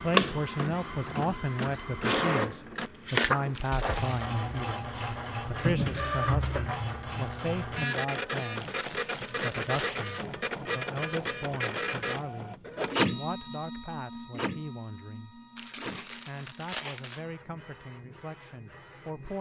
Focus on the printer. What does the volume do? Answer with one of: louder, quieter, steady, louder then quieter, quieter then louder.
quieter.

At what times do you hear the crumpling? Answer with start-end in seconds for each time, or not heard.
3.5-4.3, 8.6-10.2, 15.6-17.2.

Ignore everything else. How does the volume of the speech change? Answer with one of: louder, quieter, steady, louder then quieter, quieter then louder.
quieter.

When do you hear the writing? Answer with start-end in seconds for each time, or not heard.
not heard.